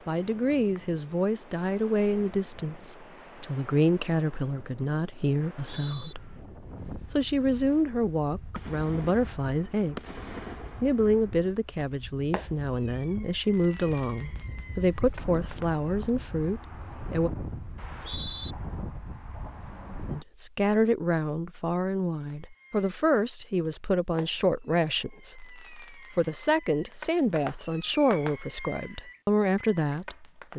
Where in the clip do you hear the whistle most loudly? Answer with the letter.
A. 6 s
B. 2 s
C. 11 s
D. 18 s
D.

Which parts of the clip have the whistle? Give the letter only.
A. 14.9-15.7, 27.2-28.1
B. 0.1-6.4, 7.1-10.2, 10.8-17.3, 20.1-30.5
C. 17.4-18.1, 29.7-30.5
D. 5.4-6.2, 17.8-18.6
D.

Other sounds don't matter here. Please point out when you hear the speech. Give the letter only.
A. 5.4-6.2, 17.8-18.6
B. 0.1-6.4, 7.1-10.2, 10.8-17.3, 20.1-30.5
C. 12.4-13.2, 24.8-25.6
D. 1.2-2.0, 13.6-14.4
B.